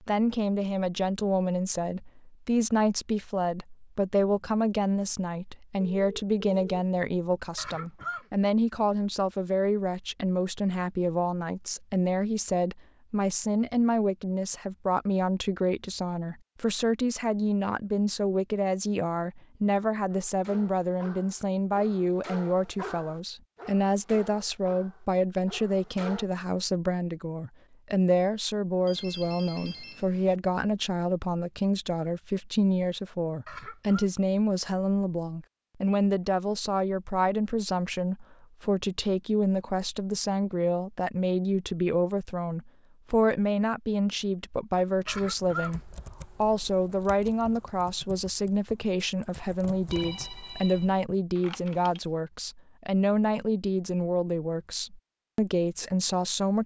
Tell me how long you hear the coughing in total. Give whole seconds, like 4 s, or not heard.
2 s.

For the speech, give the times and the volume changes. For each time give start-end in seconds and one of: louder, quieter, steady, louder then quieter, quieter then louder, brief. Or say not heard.
0.1-56.6 steady.